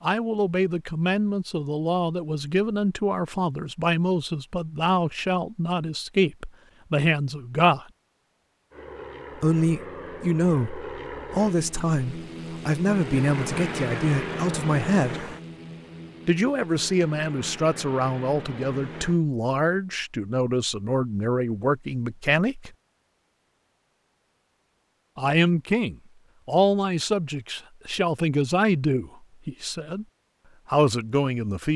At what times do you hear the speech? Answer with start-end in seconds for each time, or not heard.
0.0-7.8, 9.4-15.2, 16.2-22.7, 25.1-30.1, 30.6-31.7.